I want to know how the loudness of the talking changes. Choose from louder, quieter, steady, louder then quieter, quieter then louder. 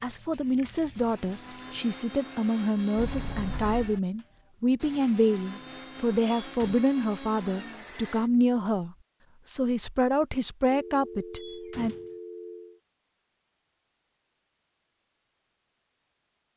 steady.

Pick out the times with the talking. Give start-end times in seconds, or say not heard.
0.0-11.9.